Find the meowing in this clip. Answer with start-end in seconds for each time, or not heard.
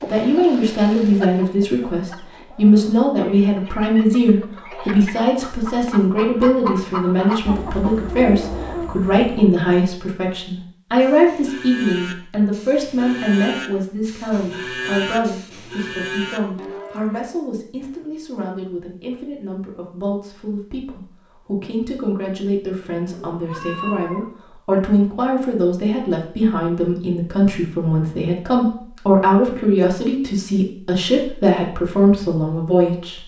22.9-24.3.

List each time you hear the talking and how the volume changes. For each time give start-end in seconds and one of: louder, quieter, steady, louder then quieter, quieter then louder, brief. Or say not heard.
0.1-33.2 quieter then louder.